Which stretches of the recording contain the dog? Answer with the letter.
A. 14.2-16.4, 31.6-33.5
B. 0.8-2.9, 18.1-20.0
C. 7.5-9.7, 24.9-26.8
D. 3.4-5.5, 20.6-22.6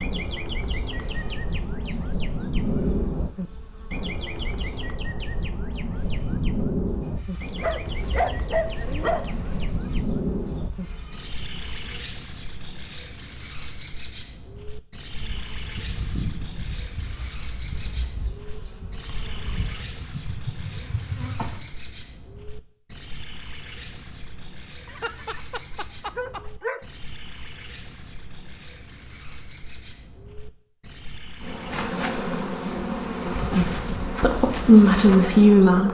C.